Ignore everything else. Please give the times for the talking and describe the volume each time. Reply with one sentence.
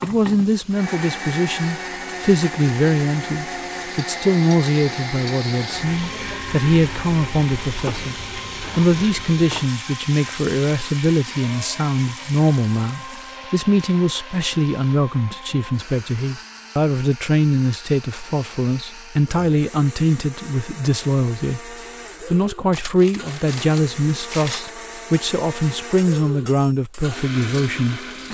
The talking can be heard from 0.0 to 28.1 s, at a steady volume.